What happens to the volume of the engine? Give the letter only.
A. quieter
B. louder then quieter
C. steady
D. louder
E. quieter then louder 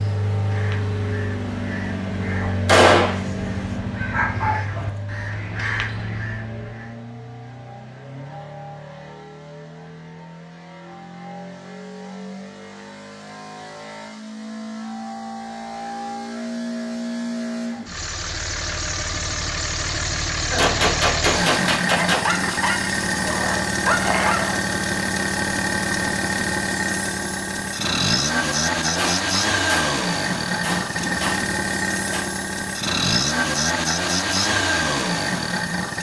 E.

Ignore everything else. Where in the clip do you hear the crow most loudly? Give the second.
6 s.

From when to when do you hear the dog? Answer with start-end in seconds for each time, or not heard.
2.4-5.0, 22.1-24.6.